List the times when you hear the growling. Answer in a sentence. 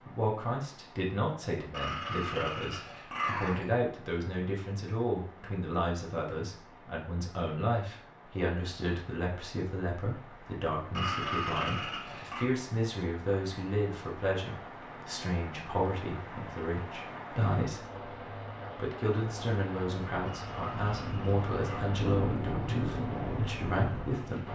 The growling can be heard from 1.7 to 3.8 s, from 10.9 to 12.4 s and from 20.2 to 21.9 s.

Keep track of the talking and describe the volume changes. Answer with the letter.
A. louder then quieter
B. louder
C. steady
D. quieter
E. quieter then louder
C.